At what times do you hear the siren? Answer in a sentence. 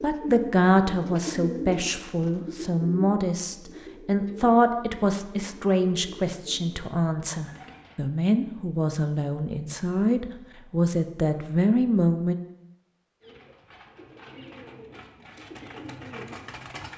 The siren can't be heard in this clip.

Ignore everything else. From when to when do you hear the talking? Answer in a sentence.
The talking can be heard from 0.0 to 12.3 s.